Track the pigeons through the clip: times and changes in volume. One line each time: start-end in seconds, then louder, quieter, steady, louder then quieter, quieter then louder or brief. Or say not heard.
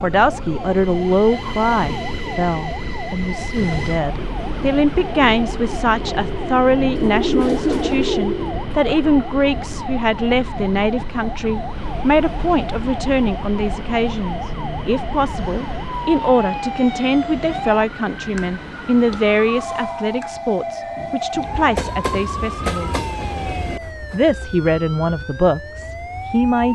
3.5-9.6 louder then quieter.